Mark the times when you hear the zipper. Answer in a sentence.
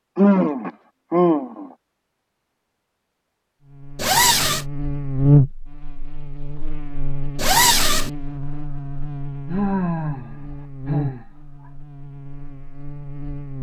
You can hear the zipper from 4.0 to 4.7 s and from 7.3 to 8.1 s.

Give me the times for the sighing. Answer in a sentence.
You can hear the sighing from 0.1 to 1.7 s and from 9.4 to 11.2 s.